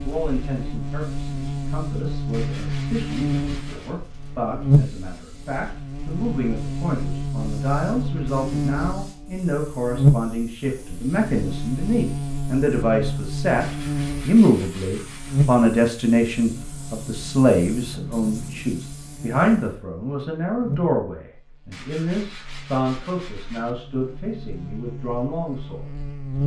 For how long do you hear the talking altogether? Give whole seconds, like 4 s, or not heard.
26 s.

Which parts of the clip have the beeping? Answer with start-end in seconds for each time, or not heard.
not heard.